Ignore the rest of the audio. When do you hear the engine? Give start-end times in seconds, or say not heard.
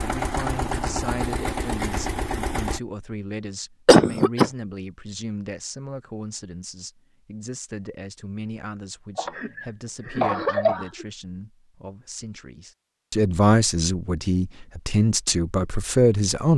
0.0-2.8.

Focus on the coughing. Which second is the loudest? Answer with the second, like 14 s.
4 s.